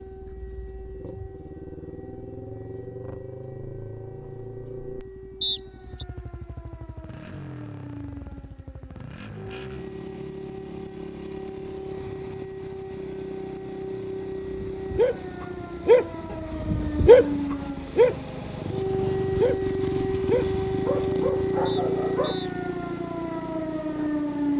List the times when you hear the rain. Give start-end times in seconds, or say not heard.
not heard.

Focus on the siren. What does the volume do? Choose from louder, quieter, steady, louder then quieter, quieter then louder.
louder.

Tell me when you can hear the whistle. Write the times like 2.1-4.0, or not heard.
5.4-6.0, 21.6-22.5.